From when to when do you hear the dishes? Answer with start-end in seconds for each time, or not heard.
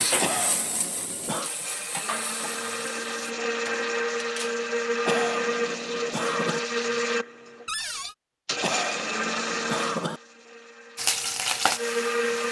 not heard.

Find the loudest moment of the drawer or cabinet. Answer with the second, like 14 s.
8 s.